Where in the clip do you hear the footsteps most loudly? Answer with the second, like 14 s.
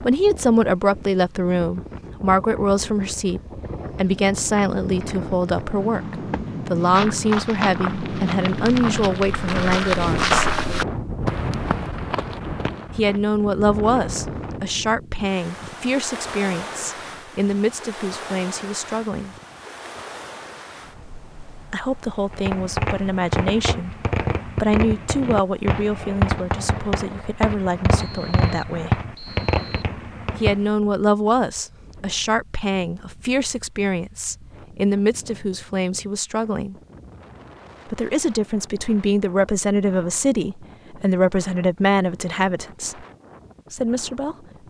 10 s.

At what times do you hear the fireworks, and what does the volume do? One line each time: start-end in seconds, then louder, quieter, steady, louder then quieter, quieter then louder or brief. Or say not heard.
22.3-30.6 steady.